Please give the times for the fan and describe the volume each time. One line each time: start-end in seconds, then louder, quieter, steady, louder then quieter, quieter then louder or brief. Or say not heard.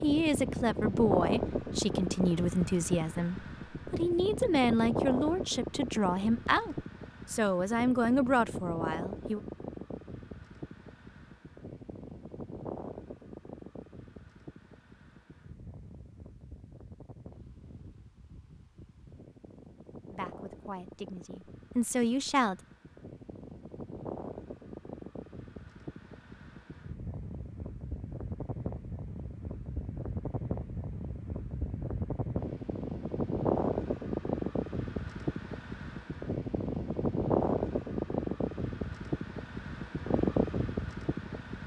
0.0-41.6 quieter then louder.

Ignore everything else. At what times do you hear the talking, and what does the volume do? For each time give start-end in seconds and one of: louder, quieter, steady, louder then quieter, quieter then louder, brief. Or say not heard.
0.0-9.4 steady
20.1-22.6 brief.